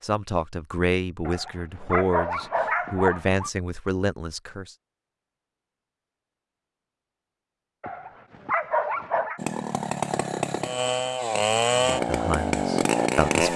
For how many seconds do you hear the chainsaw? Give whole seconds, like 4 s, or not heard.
4 s.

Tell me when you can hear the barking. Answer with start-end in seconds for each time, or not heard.
1.2-3.5, 7.8-9.4.